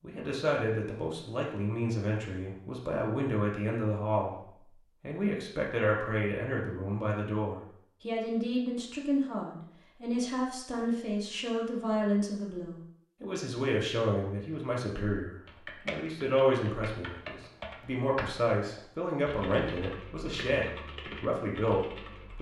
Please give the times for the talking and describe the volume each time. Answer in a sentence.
You can hear the talking from 0.0 to 22.3 s, at a steady volume.